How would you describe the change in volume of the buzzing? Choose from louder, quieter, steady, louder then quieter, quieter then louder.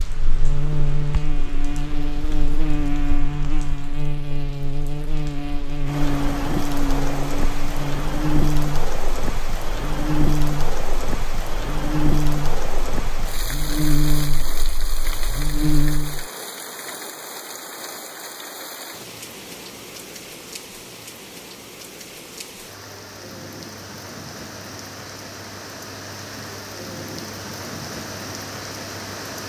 steady.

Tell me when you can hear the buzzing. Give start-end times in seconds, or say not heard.
0.0-16.2.